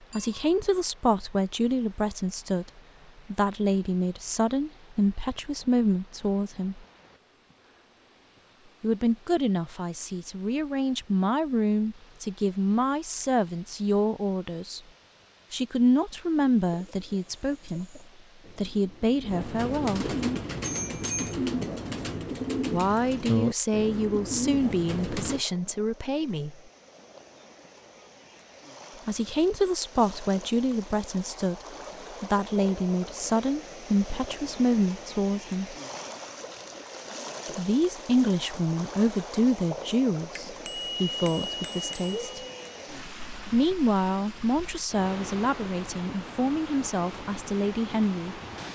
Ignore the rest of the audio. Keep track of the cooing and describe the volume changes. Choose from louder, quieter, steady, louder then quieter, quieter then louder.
louder.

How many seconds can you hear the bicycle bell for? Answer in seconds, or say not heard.
4 s.